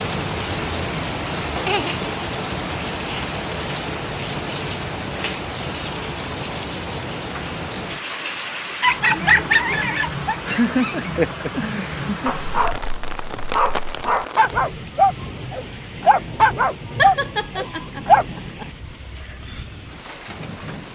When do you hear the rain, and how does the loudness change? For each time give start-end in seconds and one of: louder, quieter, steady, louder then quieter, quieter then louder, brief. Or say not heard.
0.0-20.9 quieter.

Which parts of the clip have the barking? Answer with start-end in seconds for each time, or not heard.
8.8-18.4.